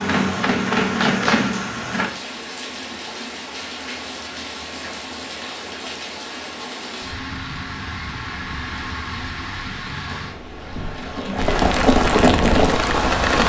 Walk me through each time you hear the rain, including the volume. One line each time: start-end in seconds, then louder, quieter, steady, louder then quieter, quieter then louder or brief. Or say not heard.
0.0-13.4 louder.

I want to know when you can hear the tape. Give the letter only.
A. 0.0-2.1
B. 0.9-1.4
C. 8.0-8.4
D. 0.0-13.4
B.